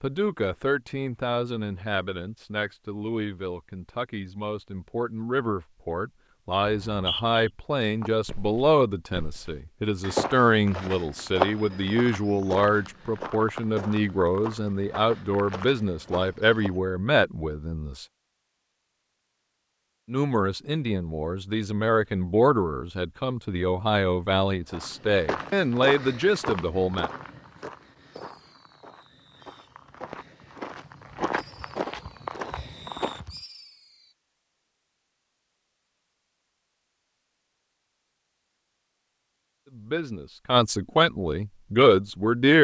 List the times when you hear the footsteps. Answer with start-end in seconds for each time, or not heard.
8.0-16.7, 24.6-33.4.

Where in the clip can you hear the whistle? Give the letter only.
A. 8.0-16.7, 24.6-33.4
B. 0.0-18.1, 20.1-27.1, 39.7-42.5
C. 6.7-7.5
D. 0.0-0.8
C.